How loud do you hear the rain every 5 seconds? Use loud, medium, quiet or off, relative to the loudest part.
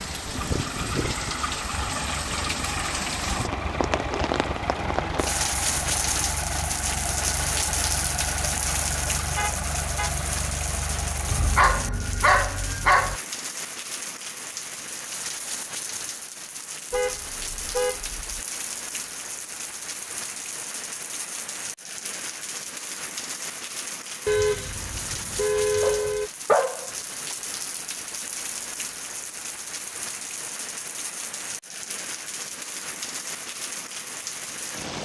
loud, loud, medium, medium, medium, medium, medium.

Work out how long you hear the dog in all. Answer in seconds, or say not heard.
3 s.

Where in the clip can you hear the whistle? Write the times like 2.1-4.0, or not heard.
not heard.